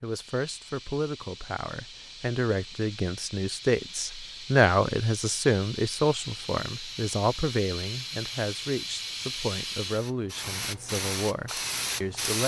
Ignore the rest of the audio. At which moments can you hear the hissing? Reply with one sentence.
The hissing can be heard from 0.0 to 12.4 s.